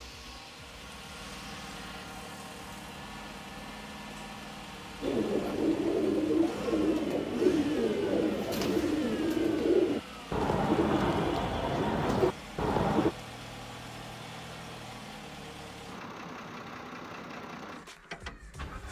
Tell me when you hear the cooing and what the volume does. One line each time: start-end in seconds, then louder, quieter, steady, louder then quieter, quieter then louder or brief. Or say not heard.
5.0-13.2 steady.